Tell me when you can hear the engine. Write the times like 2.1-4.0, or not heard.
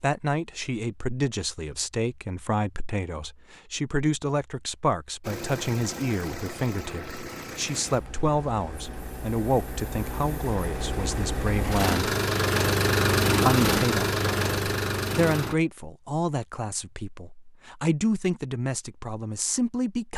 5.2-15.6.